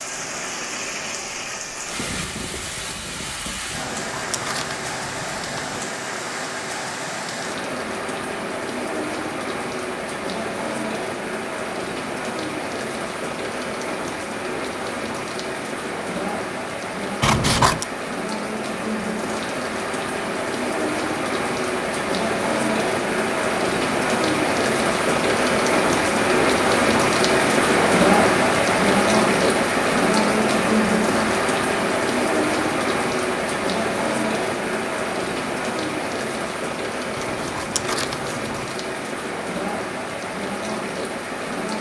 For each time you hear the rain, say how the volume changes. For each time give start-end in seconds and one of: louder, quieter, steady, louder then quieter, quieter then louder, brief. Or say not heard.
0.0-41.7 louder then quieter.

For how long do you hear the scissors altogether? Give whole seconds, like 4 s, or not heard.
4 s.